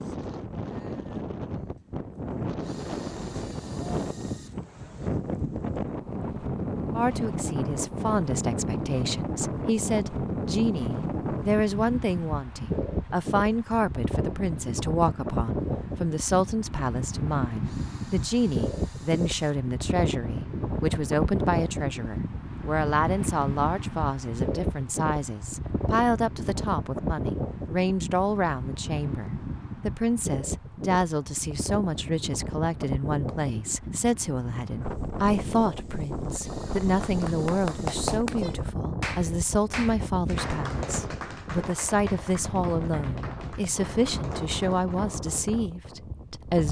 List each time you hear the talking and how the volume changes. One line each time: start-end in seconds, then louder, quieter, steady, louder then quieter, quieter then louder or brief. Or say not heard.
7.0-46.6 steady.